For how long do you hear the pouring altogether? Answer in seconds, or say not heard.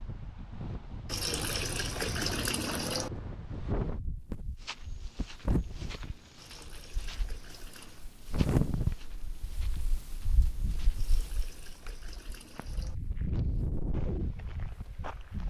6 s.